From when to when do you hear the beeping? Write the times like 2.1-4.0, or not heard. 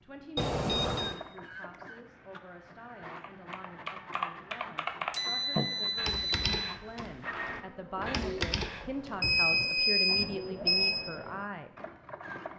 0.3-1.1, 5.1-6.8, 9.2-11.1.